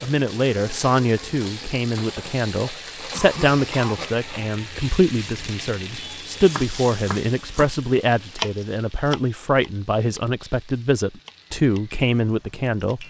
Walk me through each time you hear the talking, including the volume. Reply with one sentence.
You can hear the talking from 0.0 to 13.0 s, at a steady volume.